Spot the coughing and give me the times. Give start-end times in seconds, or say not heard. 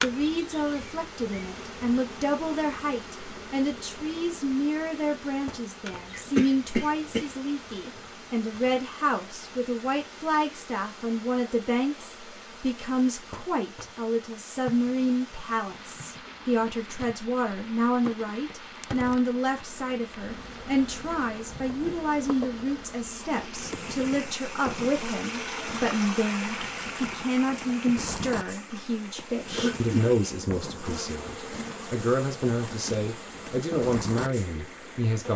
6.1-7.2, 29.5-30.1.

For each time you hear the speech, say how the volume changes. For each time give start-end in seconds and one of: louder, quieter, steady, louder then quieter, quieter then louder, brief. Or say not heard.
0.0-35.3 steady.